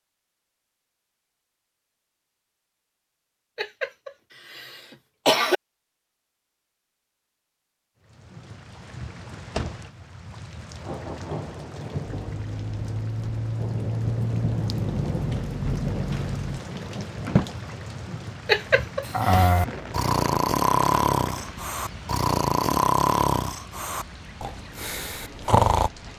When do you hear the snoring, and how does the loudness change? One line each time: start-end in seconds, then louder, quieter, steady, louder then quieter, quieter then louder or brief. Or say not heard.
19.0-25.9 quieter.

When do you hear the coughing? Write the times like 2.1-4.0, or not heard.
3.5-5.6, 18.4-19.5.